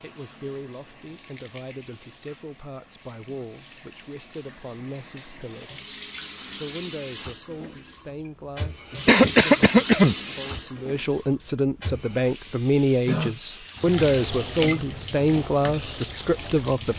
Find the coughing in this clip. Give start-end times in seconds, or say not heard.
9.1-10.6.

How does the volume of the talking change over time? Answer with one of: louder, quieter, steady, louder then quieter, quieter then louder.
louder.